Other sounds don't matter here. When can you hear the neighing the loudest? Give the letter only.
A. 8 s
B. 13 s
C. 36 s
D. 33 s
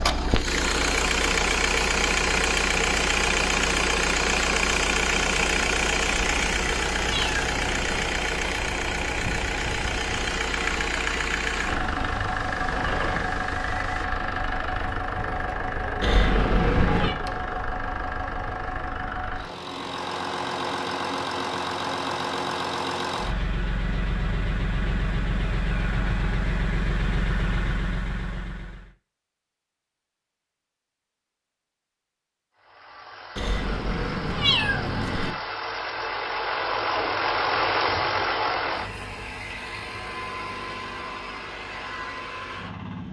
B.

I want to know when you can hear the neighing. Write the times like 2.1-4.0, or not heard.
11.6-14.1.